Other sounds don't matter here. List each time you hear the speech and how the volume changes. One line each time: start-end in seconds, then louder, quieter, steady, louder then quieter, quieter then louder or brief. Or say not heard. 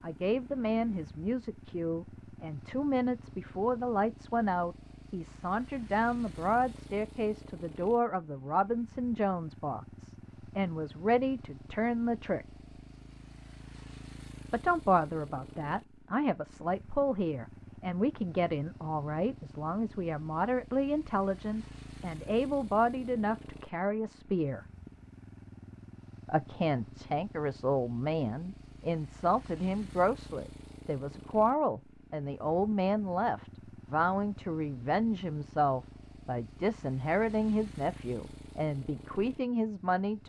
0.0-12.4 steady
14.5-24.6 steady
26.2-40.2 steady.